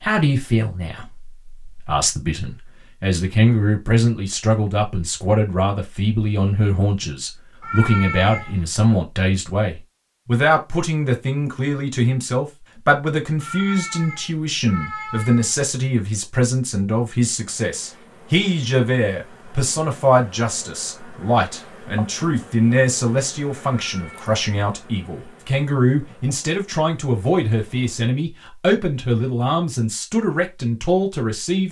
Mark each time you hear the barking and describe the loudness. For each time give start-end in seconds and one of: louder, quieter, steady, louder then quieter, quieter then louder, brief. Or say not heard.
not heard.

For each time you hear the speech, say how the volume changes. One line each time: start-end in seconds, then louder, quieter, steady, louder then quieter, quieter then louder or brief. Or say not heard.
0.0-31.6 steady.